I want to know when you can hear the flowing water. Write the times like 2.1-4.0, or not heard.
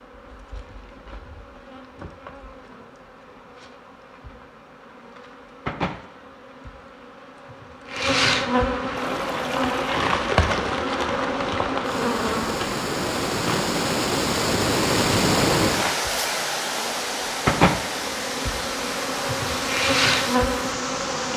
8.9-21.3.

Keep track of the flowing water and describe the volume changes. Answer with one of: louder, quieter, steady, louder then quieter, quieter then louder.
louder then quieter.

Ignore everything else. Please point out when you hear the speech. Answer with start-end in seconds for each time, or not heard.
not heard.